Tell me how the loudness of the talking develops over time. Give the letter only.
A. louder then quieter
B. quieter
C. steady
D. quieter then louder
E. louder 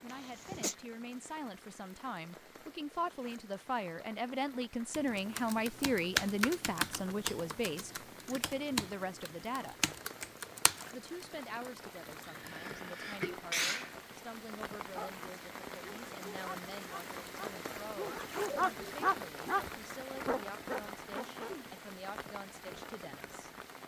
A.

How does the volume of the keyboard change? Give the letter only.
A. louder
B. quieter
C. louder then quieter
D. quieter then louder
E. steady
B.